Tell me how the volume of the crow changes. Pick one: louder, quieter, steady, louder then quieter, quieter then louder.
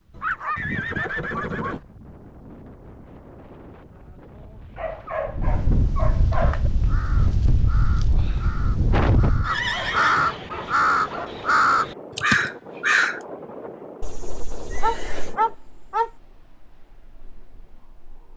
louder.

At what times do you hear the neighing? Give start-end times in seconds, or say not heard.
0.6-1.8, 9.4-10.3, 14.0-15.3.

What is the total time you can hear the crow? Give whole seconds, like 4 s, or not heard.
7 s.